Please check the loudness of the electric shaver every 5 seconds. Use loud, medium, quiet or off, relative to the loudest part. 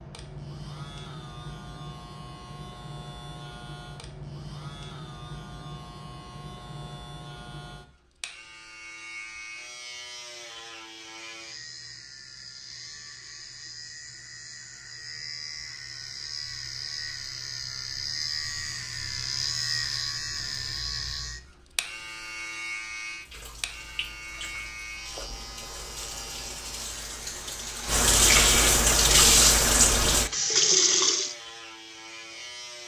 medium, medium, medium, loud, loud, medium, medium.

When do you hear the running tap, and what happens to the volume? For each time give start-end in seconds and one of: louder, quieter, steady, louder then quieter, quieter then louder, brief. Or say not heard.
23.2-31.4 louder.